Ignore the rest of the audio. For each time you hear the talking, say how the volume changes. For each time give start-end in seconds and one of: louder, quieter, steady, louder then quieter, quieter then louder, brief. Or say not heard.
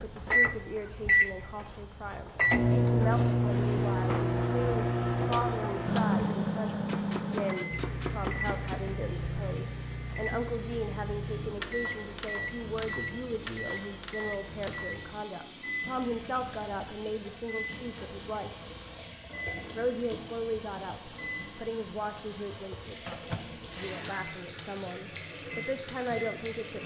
0.0-18.6 steady
19.8-26.8 quieter then louder.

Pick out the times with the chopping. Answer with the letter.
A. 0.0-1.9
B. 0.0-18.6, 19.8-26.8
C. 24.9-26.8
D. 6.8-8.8
D.